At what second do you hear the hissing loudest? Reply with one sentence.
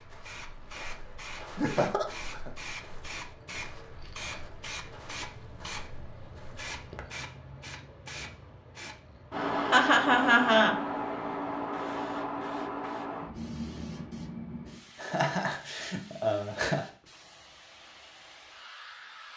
The loudest moment of the hissing is at 10 seconds.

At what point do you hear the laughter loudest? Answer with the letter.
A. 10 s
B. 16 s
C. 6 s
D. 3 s
A.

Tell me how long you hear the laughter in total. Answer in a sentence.
The laughter can be heard for 4 seconds in total.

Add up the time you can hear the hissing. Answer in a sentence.
The hissing can be heard for 19 seconds in total.